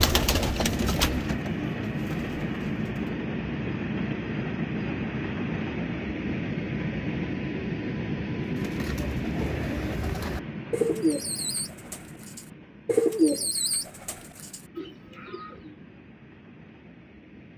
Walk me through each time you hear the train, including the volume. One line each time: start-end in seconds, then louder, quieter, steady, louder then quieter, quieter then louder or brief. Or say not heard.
0.0-17.5 quieter.